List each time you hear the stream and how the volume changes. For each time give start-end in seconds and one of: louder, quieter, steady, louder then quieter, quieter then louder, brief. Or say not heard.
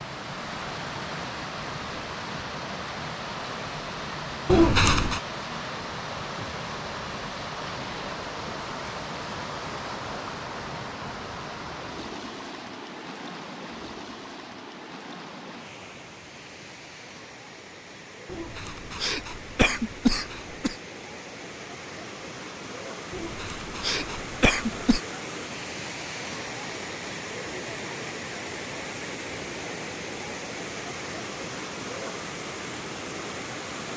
0.0-33.9 quieter then louder.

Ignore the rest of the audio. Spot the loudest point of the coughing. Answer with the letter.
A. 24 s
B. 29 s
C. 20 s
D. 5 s
D.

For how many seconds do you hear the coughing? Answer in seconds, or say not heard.
5 s.